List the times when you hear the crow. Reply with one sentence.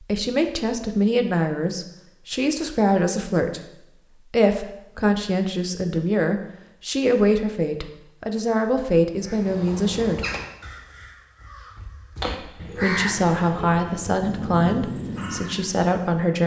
You can hear the crow from 9.2 to 15.7 s.